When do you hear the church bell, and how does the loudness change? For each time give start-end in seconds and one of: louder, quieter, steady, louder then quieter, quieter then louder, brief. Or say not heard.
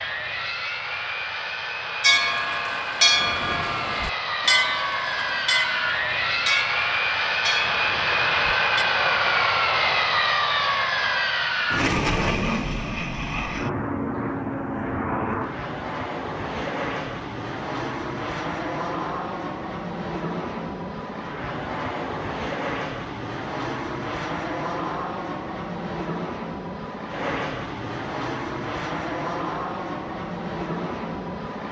2.0-8.8 quieter.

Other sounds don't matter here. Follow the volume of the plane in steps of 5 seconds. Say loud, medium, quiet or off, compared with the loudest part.
medium, loud, loud, medium, medium, medium, medium.